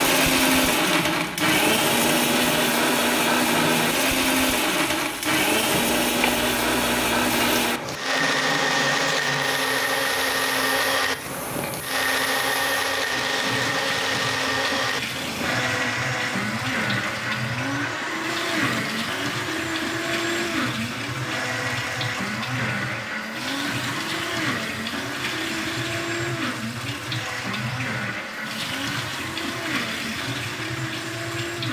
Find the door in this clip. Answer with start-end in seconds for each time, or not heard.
not heard.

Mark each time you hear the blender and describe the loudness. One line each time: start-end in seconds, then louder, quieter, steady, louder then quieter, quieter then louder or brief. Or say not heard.
0.0-31.6 quieter.